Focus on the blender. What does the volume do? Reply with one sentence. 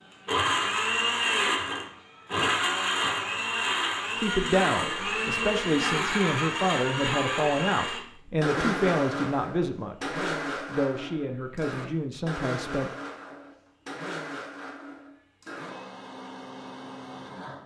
The volume of the blender goes down.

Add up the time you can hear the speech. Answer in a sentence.
The speech can be heard for 9 seconds in total.